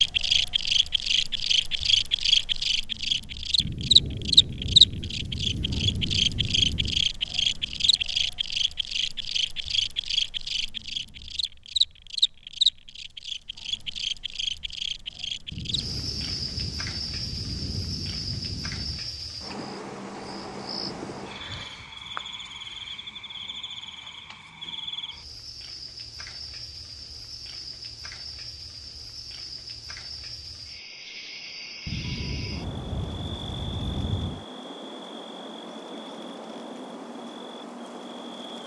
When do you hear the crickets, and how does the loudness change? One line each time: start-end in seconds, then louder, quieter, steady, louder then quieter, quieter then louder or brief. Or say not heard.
0.0-38.6 quieter.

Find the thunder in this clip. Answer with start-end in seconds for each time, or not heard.
3.5-7.1, 15.5-19.1, 31.9-34.5.